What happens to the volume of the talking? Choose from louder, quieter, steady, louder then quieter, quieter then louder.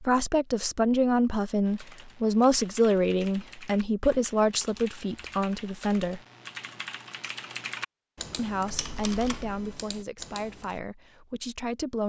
quieter.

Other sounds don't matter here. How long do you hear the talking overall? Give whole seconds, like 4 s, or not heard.
10 s.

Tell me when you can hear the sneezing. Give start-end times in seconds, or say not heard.
not heard.